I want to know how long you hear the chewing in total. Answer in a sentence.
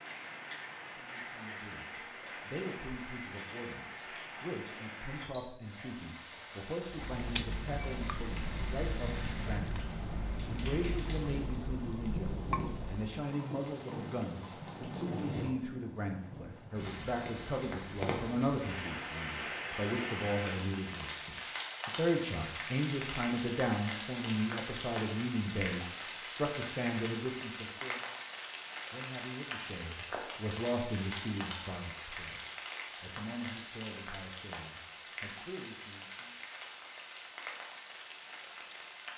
You can hear the chewing for 6 seconds altogether.